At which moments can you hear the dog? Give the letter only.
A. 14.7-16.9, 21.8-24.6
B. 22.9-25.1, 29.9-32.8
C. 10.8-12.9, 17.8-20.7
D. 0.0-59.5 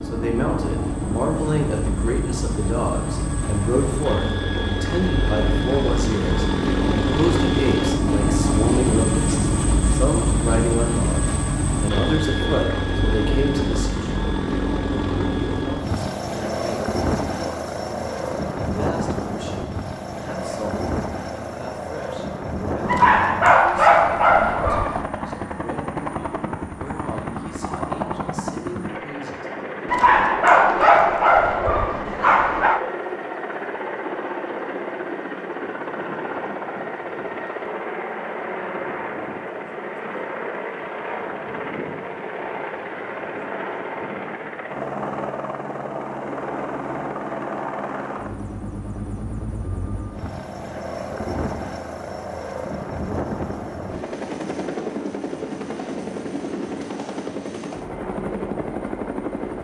B.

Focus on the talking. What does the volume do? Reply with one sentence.
The loudness of the talking goes down.